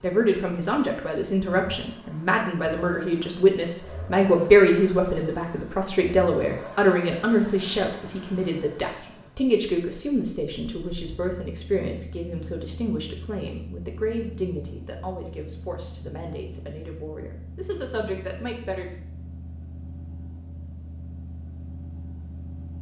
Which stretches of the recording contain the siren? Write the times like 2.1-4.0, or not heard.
not heard.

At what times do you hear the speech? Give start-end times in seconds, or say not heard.
0.0-18.9.